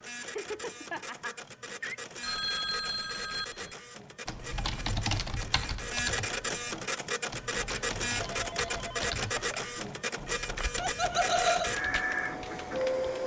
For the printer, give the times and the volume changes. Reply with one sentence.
You can hear the printer from 0.0 to 13.2 s, getting louder.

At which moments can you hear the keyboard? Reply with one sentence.
The keyboard can be heard from 4.2 to 13.1 s.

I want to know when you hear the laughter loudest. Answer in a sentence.
The volume of the laughter peaks at 11 seconds.